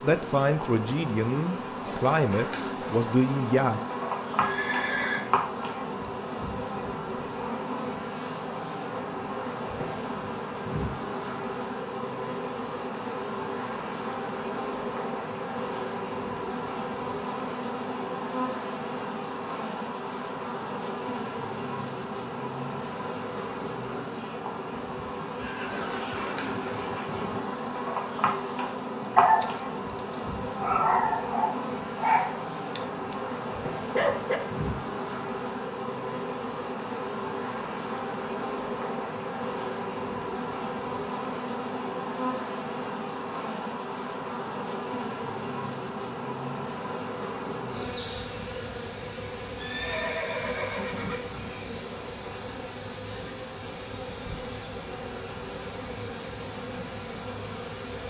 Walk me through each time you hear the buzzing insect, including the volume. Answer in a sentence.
The buzzing insect can be heard from 0.0 to 58.0 s, at a steady volume.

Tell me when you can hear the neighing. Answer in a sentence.
You can hear the neighing from 4.4 to 5.2 s, from 25.4 to 27.4 s and from 49.5 to 51.2 s.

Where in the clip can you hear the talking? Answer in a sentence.
You can hear the talking from 0.0 to 3.8 s.